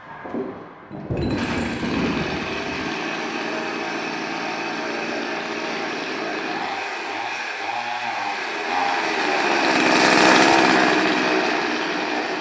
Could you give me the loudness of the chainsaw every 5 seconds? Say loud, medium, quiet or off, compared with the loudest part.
medium, medium, loud.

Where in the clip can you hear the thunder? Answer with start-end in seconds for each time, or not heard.
1.1-3.0.